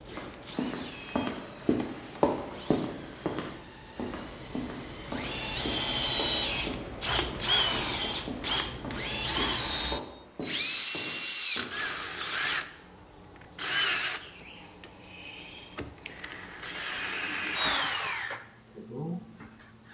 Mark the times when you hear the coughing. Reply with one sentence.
You can't hear the coughing here.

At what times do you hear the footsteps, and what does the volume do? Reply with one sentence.
The footsteps can be heard from 0.1 to 11.7 s, getting quieter.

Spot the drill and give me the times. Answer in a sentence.
You can hear the drill from 0.0 to 19.8 s.